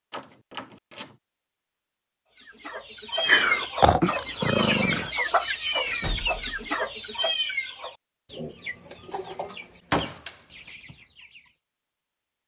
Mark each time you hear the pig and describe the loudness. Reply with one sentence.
You can't hear the pig here.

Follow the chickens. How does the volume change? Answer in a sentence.
The loudness of the chickens goes down.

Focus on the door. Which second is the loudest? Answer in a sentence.
The loudest moment of the door is at 10 seconds.